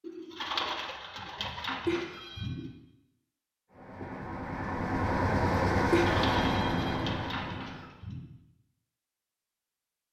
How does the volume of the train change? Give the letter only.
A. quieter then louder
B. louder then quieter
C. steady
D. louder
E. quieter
B.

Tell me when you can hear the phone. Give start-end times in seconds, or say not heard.
1.9-2.5, 5.9-7.0.